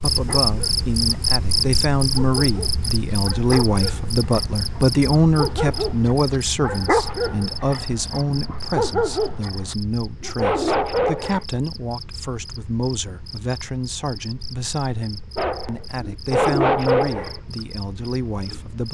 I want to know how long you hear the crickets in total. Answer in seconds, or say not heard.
19 s.